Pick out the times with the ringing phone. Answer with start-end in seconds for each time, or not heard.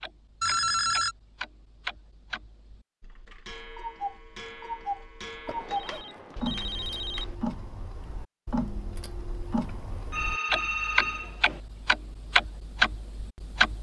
0.4-1.1, 5.5-7.3, 9.7-11.6.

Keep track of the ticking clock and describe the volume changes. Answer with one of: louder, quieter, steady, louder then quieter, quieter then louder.
louder.